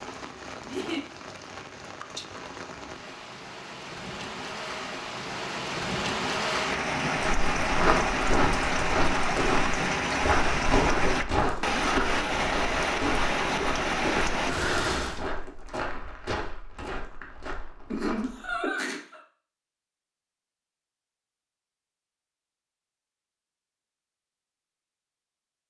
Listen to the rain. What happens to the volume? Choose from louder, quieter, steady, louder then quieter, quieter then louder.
louder.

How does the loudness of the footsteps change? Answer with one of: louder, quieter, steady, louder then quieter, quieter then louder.
quieter.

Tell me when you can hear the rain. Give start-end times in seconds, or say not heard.
0.0-15.2.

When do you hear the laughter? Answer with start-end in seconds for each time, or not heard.
0.6-1.0, 17.9-19.2.